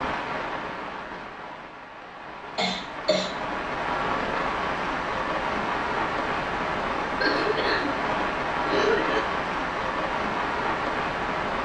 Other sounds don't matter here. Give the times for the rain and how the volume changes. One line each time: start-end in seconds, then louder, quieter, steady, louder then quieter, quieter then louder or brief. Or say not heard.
0.0-11.6 louder.